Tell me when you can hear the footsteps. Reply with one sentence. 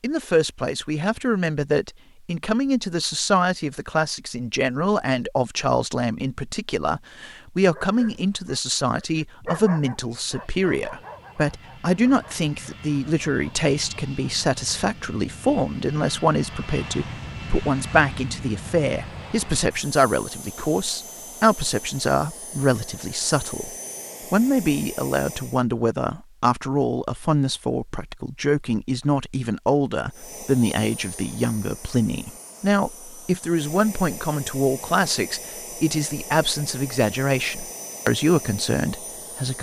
The footsteps can't be heard in this clip.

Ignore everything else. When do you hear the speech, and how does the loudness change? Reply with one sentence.
The speech can be heard from 0.0 to 23.7 s, at a steady volume; and from 24.3 to 39.5 s, at a steady volume.